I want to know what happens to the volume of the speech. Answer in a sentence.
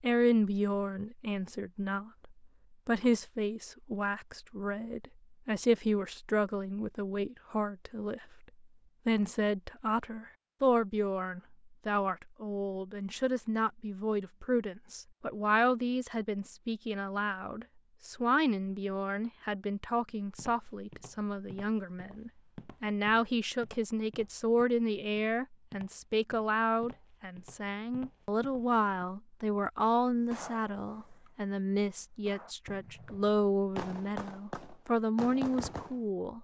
The loudness of the speech stays about the same.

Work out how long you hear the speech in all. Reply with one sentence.
You can hear the speech for 36 seconds altogether.